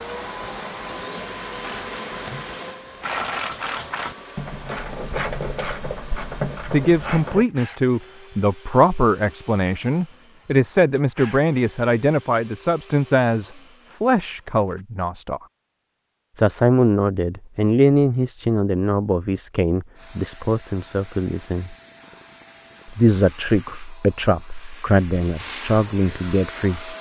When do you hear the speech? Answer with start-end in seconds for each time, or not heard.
6.7-15.4, 16.4-21.8, 22.9-26.9.